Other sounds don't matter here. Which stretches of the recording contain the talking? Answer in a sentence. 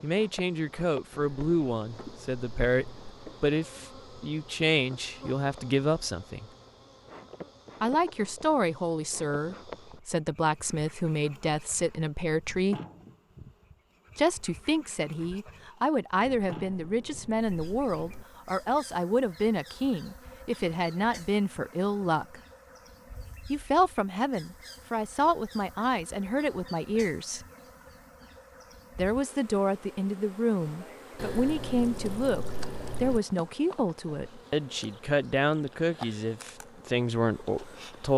You can hear the talking from 0.0 to 6.5 s, from 7.8 to 12.8 s, from 14.2 to 22.4 s, from 23.5 to 27.4 s and from 28.9 to 38.1 s.